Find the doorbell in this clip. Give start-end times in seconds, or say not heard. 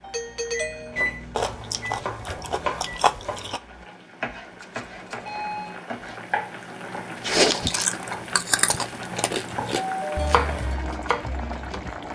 0.0-1.0, 4.6-5.8, 9.8-10.4.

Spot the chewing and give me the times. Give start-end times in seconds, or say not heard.
1.4-3.6, 7.2-9.8.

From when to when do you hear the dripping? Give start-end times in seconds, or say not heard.
not heard.